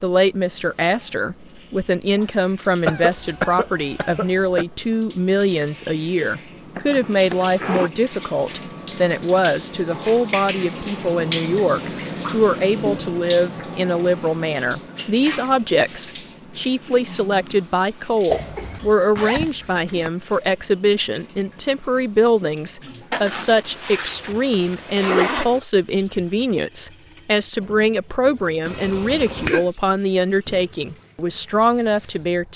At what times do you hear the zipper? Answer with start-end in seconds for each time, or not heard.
6.8-7.9, 19.1-20.1, 23.1-25.6.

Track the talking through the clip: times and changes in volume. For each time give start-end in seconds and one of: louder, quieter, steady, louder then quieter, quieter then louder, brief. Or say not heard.
0.0-32.5 steady.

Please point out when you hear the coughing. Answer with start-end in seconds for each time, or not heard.
2.9-4.7, 18.3-18.9, 28.6-29.7.